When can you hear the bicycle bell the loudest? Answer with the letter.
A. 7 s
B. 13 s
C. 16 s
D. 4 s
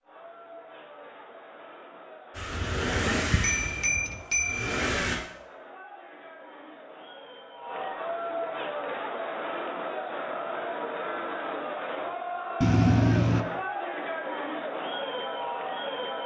B.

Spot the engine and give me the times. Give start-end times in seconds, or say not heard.
2.4-5.2.